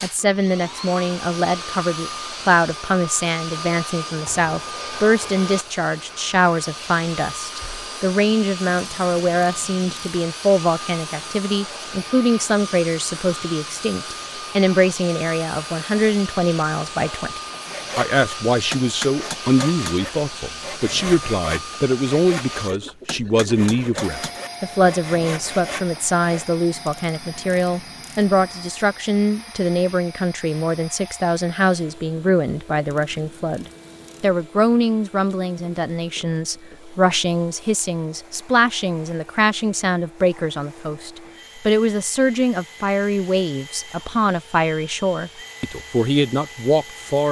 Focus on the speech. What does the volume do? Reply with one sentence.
The volume of the speech stays about the same.